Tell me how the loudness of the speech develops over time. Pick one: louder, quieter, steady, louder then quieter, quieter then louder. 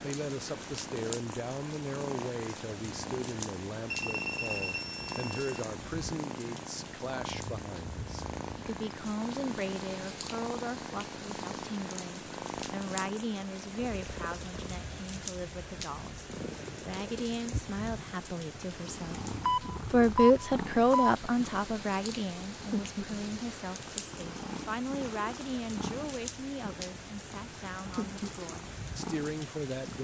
louder then quieter.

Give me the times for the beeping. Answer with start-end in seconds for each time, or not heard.
3.9-5.7, 19.4-21.1.